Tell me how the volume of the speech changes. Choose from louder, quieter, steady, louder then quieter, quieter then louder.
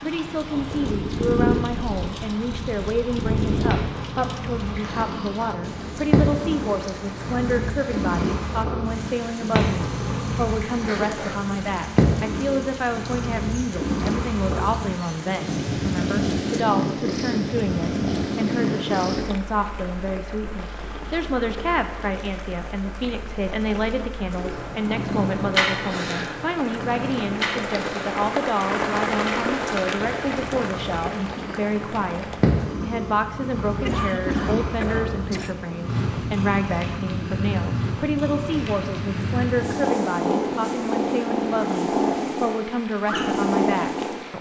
steady.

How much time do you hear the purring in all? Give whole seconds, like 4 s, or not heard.
44 s.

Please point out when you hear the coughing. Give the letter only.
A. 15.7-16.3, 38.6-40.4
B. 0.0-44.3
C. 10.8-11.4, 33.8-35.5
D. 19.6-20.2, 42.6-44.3
C.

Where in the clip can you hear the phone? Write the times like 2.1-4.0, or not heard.
not heard.